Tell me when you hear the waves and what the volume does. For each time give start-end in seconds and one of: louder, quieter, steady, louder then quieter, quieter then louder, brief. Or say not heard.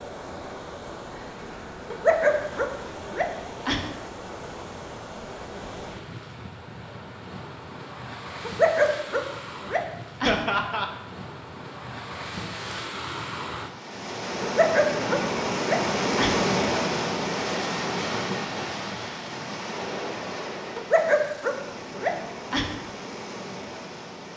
0.0-24.3 louder then quieter.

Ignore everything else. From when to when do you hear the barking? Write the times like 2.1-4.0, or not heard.
1.9-3.9, 8.4-10.4, 14.4-16.4, 20.8-22.8.